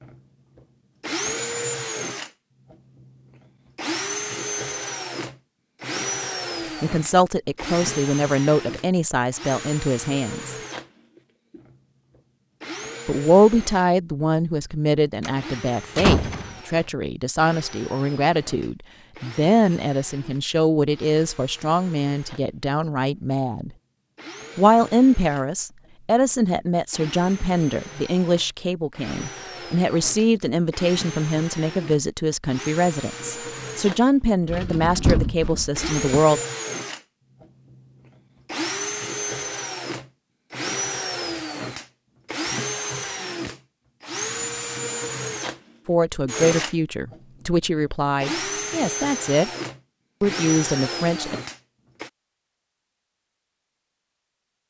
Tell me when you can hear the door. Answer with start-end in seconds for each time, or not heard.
15.2-16.6, 34.5-36.0.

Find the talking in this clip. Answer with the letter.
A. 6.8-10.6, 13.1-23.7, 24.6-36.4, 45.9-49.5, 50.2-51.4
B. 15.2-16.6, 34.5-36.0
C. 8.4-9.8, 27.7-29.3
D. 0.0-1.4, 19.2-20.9
A.